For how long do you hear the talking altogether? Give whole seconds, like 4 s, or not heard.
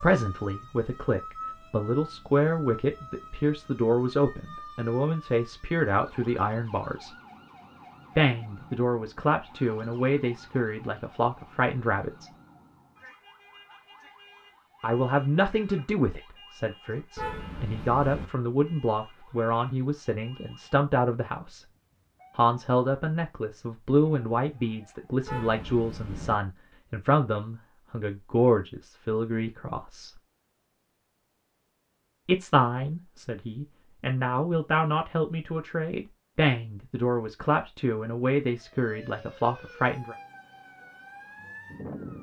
34 s.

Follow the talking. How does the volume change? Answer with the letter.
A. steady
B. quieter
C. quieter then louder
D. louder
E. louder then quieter
A.